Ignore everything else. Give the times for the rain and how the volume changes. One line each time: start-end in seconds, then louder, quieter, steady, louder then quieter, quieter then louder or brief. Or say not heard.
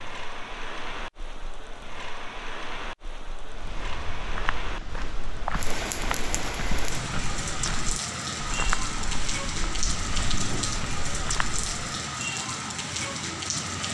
0.0-13.8 louder.